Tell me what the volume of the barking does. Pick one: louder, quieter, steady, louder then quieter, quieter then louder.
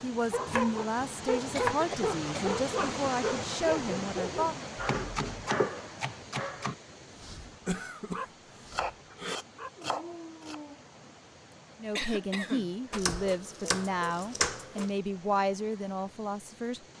quieter.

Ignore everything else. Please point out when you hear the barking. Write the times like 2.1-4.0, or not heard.
0.3-10.9.